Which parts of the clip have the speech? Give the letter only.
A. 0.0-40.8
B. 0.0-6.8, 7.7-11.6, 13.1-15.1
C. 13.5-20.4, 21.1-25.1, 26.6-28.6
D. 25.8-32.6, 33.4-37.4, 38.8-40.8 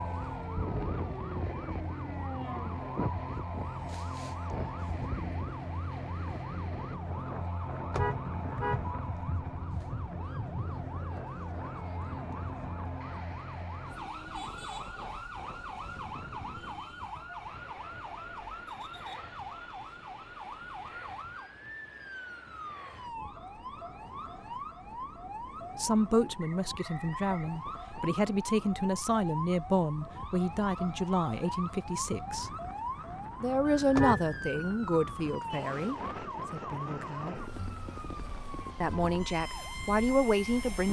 D.